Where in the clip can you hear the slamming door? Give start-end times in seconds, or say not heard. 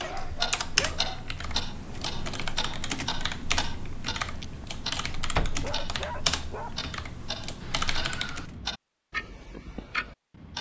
5.1-5.7.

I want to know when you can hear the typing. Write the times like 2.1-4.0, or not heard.
0.0-8.6.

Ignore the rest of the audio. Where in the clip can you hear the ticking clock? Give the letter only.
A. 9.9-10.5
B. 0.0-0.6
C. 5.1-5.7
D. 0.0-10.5
D.